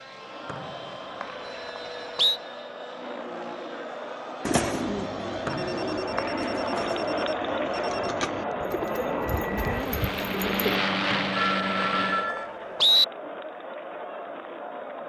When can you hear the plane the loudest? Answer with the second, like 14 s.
11 s.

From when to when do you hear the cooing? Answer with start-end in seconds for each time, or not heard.
4.5-10.8.